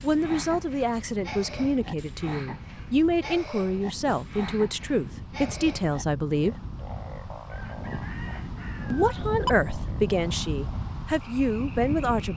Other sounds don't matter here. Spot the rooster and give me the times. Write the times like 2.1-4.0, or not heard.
7.5-9.5.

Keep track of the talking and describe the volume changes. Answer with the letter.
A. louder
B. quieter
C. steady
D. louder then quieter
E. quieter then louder
C.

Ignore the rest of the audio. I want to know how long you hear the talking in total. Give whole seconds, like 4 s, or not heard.
10 s.